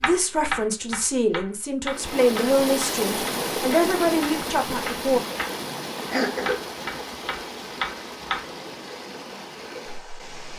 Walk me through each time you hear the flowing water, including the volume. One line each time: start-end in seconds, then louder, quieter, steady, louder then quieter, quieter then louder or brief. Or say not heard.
1.9-10.5 quieter.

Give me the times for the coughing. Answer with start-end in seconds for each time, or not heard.
6.1-6.7.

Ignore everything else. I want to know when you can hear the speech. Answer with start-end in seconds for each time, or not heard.
0.0-5.2.